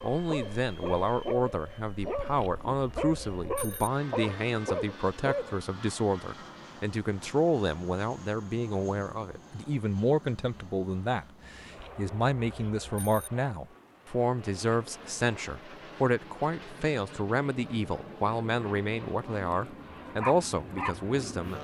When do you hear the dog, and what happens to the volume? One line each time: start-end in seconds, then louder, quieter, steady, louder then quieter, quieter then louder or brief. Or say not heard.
0.0-5.6 steady
19.5-21.4 brief.